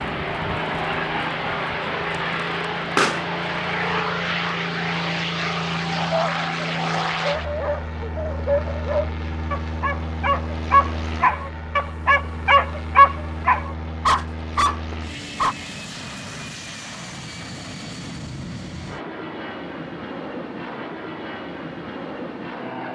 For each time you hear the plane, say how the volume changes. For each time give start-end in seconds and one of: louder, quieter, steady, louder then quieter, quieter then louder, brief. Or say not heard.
0.0-22.8 quieter.